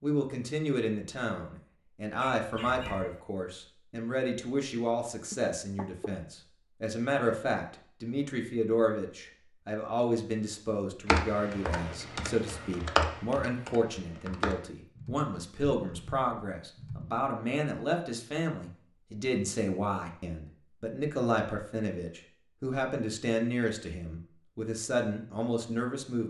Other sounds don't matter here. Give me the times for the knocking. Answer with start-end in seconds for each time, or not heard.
5.3-6.2.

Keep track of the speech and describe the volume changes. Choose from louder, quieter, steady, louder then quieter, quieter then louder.
steady.